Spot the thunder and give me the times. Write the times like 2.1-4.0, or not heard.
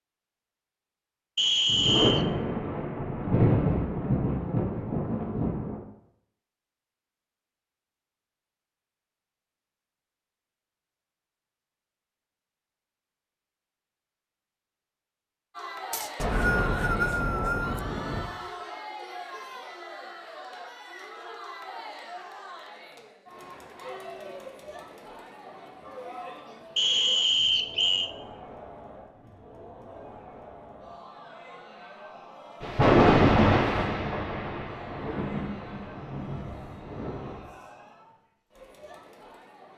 1.6-5.8, 16.1-18.2, 32.6-37.4.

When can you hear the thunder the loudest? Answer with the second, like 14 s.
33 s.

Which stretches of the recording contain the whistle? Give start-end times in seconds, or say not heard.
1.4-2.2, 15.9-17.8, 26.8-28.1.